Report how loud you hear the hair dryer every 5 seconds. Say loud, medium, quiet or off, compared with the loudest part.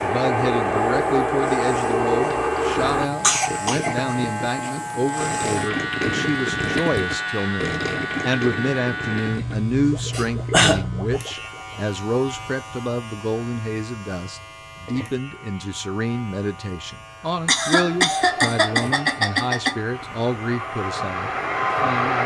loud, off, off, quiet, loud.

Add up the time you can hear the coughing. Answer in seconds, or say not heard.
4 s.